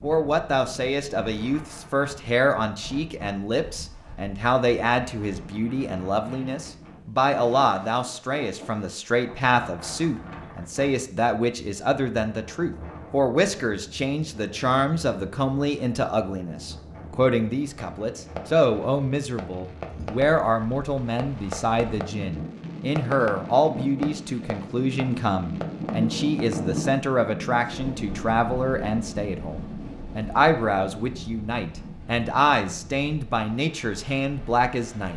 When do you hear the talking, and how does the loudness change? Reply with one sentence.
You can hear the talking from 0.0 to 35.1 s, at a steady volume.